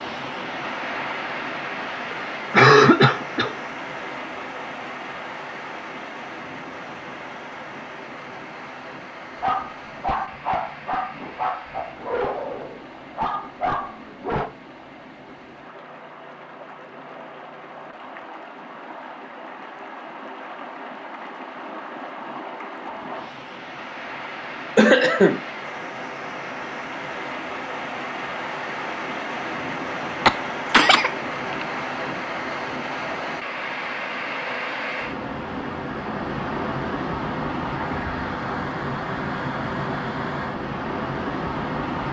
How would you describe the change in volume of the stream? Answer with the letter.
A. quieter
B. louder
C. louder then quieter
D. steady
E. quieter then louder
E.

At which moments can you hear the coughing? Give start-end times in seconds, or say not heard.
2.1-3.5, 24.8-25.4, 30.2-31.6.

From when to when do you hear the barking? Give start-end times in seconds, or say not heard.
9.4-14.4.